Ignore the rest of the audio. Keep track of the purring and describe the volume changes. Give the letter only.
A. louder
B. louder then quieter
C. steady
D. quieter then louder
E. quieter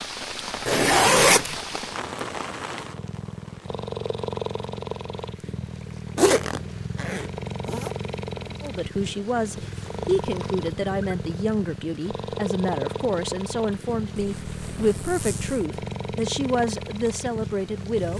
C.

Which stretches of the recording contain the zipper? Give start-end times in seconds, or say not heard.
0.7-1.6, 6.2-7.9, 14.2-15.7.